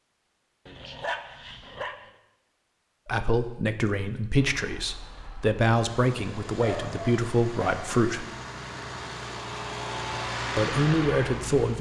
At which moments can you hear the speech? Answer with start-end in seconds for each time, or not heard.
3.0-8.2, 10.6-11.7.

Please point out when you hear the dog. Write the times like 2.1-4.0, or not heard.
0.7-1.9, 6.5-7.8.